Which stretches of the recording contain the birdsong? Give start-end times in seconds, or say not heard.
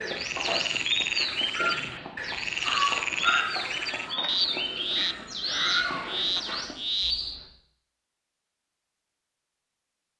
0.0-7.5.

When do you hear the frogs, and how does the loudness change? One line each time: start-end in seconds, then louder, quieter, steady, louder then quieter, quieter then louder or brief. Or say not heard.
0.0-7.2 steady.